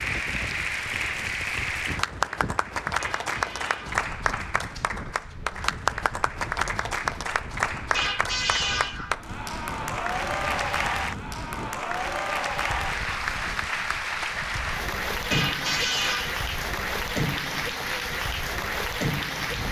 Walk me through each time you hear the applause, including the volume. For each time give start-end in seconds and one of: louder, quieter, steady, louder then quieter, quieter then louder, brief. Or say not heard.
0.0-19.6 steady.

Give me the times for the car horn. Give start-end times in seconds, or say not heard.
3.0-4.0, 7.9-9.2, 15.3-16.4.